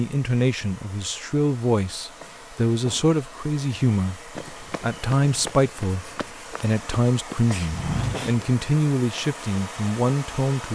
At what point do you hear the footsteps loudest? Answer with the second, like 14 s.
8 s.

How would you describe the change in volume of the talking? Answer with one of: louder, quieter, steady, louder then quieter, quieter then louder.
steady.